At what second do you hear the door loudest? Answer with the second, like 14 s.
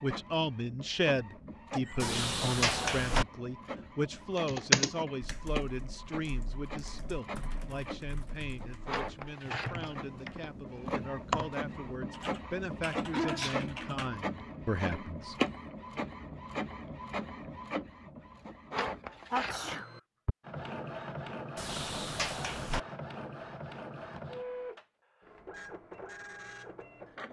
3 s.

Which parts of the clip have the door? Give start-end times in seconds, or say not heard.
2.0-3.2, 21.6-22.8.